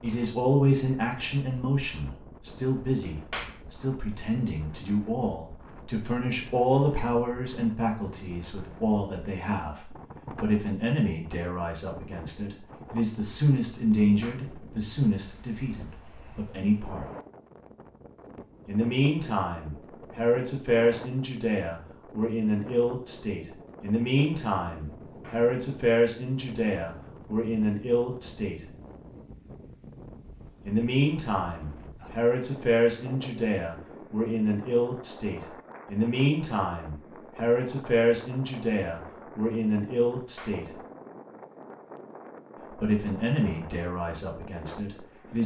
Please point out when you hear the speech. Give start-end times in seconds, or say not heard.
0.0-17.1, 18.6-28.6, 30.6-40.8, 42.7-45.4.